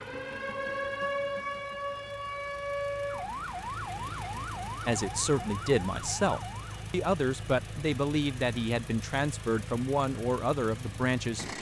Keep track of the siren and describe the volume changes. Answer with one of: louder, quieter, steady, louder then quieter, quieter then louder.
quieter.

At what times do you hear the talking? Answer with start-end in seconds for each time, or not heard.
4.8-11.5.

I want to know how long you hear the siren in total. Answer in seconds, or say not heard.
7 s.